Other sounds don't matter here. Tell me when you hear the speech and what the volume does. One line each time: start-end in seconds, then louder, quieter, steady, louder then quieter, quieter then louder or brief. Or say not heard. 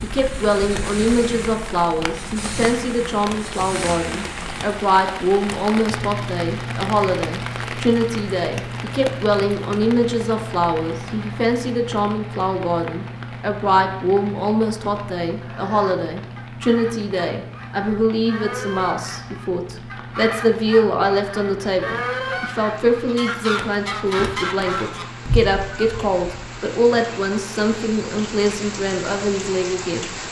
0.0-30.1 steady.